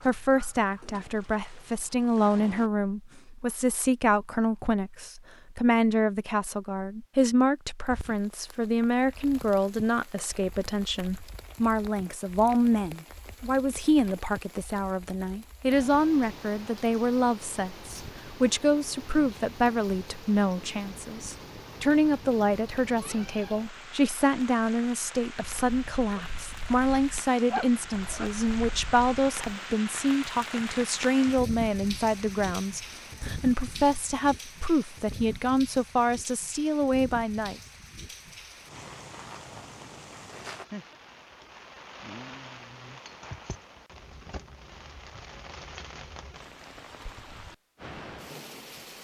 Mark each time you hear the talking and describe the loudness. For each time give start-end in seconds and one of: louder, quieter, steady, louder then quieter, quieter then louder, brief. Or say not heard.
0.1-37.5 steady.